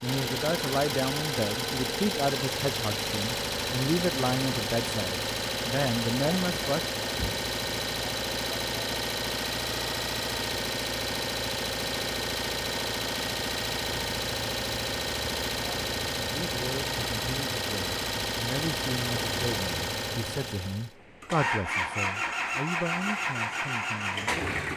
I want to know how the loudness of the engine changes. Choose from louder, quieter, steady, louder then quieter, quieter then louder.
steady.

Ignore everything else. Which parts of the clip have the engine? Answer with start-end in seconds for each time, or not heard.
0.0-24.7.